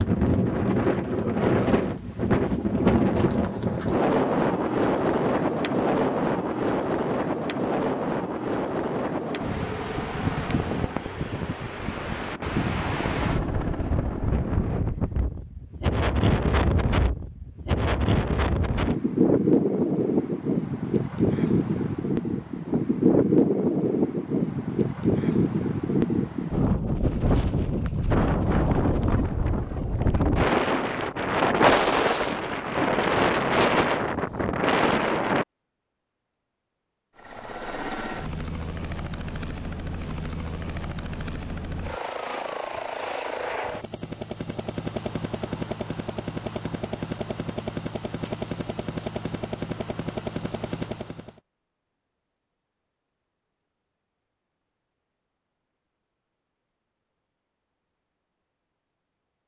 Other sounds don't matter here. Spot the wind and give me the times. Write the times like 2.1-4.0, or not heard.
0.0-35.5.